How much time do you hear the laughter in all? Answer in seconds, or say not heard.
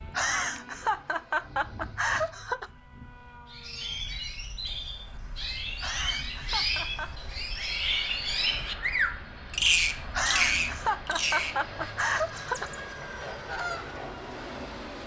7 s.